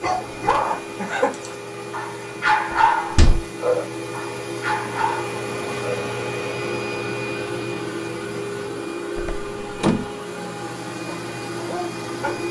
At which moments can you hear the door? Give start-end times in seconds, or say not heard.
2.7-3.4, 9.2-10.1.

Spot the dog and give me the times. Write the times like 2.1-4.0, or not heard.
0.0-6.0, 11.1-12.4.